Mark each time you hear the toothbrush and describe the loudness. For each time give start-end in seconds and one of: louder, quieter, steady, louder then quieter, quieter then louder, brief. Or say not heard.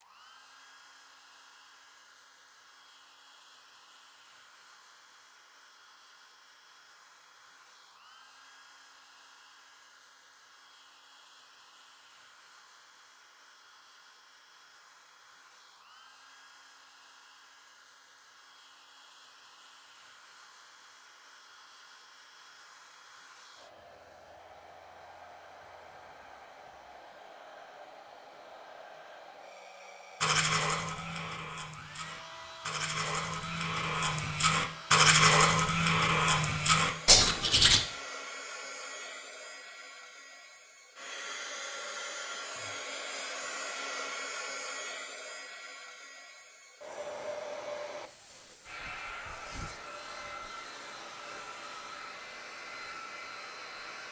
30.2-37.8 louder.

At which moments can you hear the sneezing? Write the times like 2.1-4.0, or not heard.
not heard.